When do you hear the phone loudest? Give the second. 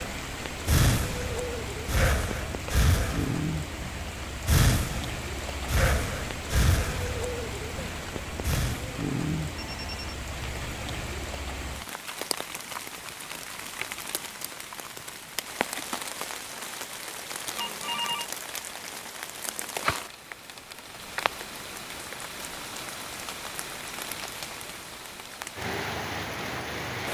18 s.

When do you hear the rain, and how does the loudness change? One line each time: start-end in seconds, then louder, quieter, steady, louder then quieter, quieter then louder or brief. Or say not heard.
0.0-27.0 steady.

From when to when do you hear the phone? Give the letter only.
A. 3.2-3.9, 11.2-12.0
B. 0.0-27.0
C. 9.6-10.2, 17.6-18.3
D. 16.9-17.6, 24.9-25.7
C.